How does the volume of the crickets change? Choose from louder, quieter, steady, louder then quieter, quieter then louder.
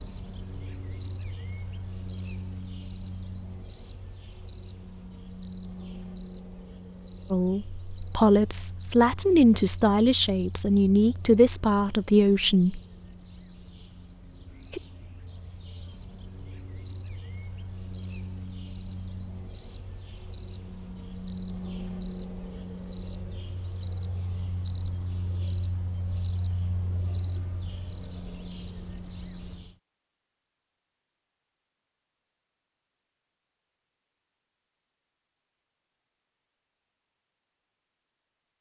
quieter then louder.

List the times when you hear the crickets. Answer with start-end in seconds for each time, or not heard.
0.0-29.7.